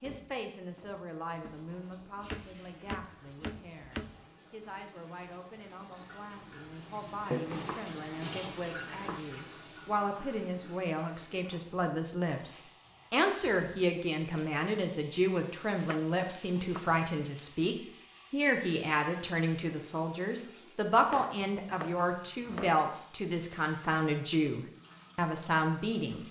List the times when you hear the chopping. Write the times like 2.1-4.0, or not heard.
1.4-4.2, 7.3-9.2, 15.8-16.9, 21.0-22.9.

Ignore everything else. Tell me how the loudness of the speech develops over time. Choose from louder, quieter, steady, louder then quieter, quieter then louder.
louder.